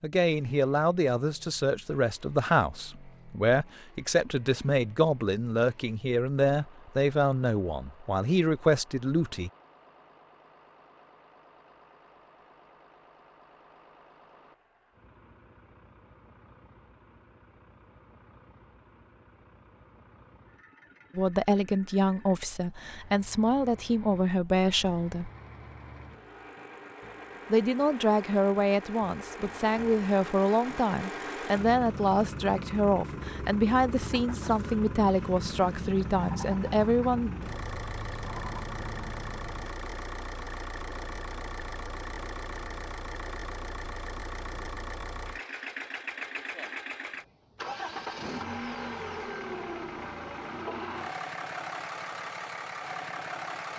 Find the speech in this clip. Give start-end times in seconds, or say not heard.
0.0-9.5, 21.1-25.3, 27.5-37.3.